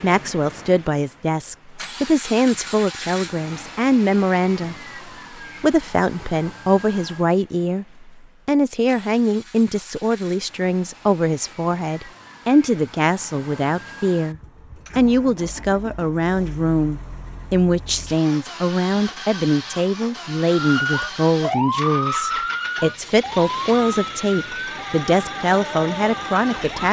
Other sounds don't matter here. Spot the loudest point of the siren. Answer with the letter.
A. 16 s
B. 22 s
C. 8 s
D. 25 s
B.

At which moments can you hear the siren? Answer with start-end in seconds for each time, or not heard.
20.4-26.8.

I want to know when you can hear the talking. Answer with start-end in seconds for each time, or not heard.
0.0-4.8, 5.6-26.8.